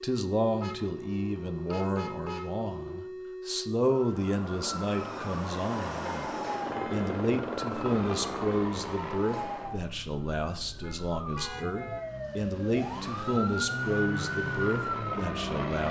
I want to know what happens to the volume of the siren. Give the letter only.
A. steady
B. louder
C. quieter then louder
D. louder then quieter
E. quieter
B.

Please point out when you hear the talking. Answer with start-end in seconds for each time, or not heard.
0.0-15.8.